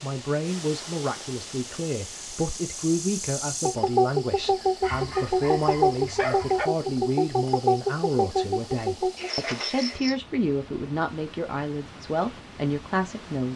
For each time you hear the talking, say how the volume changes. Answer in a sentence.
The talking can be heard from 0.0 to 13.5 s, at a steady volume.